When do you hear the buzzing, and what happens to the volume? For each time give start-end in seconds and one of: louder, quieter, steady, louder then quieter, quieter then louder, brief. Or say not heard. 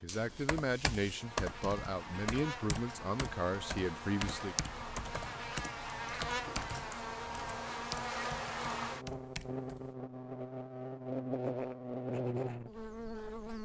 0.0-13.6 louder.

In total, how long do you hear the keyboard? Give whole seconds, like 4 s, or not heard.
10 s.